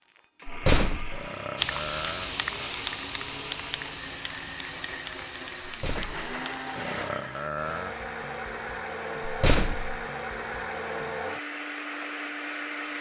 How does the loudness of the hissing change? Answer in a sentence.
The loudness of the hissing goes down.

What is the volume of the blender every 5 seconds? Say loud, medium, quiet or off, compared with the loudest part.
medium, loud, loud.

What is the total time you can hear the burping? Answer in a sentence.
You can hear the burping for 3 seconds altogether.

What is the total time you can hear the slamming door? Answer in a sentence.
You can hear the slamming door for 2 seconds altogether.